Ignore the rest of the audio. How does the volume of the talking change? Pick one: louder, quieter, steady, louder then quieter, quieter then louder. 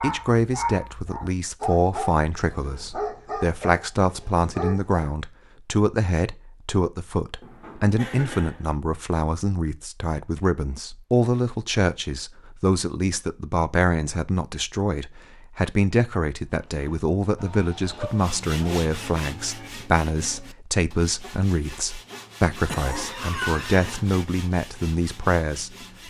steady.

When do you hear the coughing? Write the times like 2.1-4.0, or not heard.
7.4-8.8, 22.6-24.0.